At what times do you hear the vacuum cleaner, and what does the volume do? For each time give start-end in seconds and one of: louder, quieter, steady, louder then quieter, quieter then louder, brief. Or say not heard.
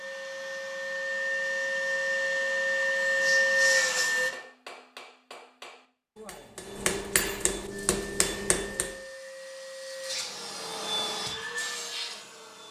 0.0-4.3 louder
7.7-12.6 louder.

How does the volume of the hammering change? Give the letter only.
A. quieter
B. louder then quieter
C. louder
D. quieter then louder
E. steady
C.